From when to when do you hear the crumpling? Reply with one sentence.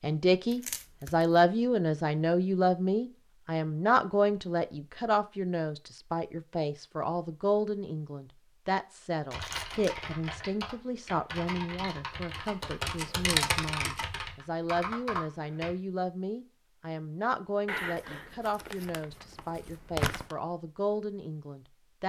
The crumpling can be heard from 0.5 to 1.2 s, from 9.3 to 10.1 s and from 17.6 to 20.4 s.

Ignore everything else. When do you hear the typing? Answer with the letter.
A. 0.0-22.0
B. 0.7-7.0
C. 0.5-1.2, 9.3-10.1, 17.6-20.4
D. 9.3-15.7
D.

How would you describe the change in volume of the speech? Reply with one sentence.
The volume of the speech goes down.